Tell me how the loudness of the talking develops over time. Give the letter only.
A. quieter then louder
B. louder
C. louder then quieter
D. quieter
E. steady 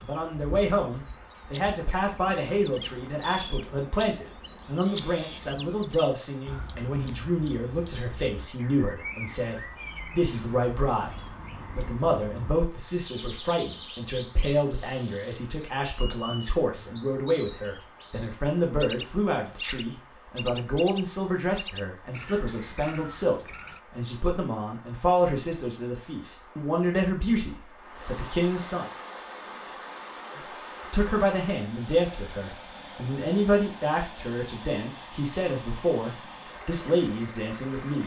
E.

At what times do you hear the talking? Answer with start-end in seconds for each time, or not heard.
0.0-28.9, 30.4-38.0.